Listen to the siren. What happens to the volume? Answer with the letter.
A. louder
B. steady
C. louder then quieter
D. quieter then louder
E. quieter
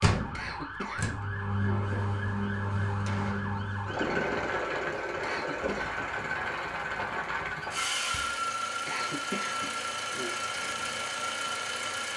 B.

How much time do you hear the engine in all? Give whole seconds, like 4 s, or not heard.
12 s.